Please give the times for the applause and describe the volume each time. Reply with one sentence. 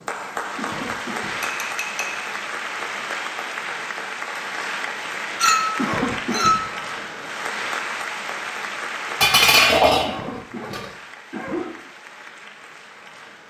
The applause can be heard from 0.0 to 13.4 s, getting quieter.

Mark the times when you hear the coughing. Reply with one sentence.
The coughing can be heard from 0.6 to 1.4 s, from 5.8 to 6.7 s and from 10.1 to 11.8 s.